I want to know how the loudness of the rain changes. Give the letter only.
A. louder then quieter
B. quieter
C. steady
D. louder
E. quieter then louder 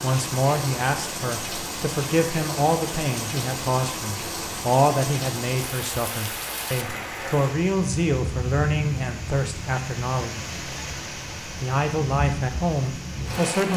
C.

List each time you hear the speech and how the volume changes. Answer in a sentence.
You can hear the speech from 0.0 to 10.4 s, at a steady volume; and briefly from 11.6 to 13.7 s.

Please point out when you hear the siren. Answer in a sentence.
You can't hear the siren here.